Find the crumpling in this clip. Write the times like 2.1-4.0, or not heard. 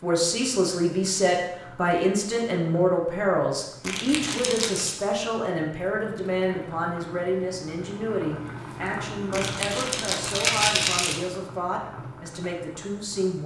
3.8-5.0, 9.3-11.2.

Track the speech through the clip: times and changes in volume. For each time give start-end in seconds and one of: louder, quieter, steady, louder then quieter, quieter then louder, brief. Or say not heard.
0.0-13.4 quieter.